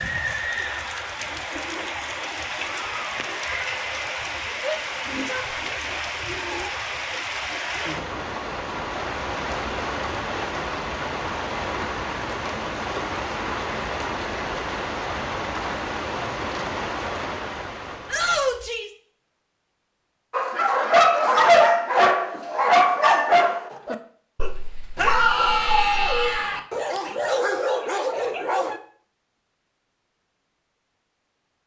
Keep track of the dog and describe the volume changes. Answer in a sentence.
The loudness of the dog goes down.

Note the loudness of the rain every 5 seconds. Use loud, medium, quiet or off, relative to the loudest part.
loud, loud, loud, loud, off, off, off.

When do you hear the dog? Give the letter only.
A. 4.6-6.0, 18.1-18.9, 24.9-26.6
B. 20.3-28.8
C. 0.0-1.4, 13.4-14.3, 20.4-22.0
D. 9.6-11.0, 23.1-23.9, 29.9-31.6
B.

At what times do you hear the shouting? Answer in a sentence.
The shouting can be heard from 4.6 to 6.0 s, from 18.1 to 18.9 s and from 24.9 to 26.6 s.